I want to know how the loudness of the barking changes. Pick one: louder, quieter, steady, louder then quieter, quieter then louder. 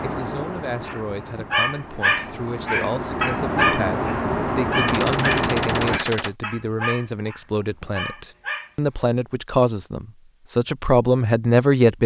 quieter.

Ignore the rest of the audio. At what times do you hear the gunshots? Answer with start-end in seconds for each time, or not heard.
4.8-6.3.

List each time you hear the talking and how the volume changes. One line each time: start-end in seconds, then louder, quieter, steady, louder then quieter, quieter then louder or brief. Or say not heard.
0.0-12.0 louder.